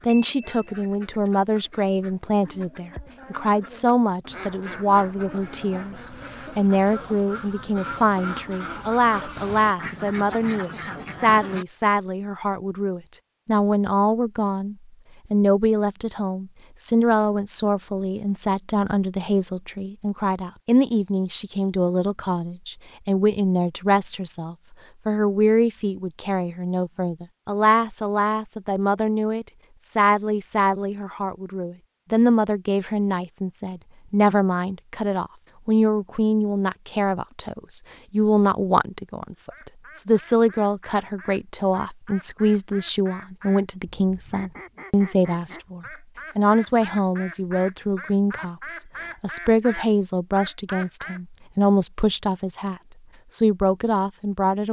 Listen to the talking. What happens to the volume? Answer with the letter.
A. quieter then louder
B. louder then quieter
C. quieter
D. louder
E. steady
E.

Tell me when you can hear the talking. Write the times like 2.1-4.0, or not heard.
0.1-54.6.